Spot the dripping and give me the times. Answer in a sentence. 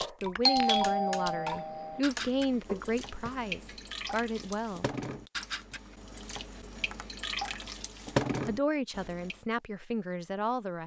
The dripping can be heard from 0.0 to 9.3 s.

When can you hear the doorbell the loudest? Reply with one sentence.
The volume of the doorbell peaks at 1 second.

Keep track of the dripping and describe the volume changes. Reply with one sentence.
The loudness of the dripping goes down, then up.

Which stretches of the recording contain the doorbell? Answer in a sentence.
You can hear the doorbell from 0.5 to 2.0 s.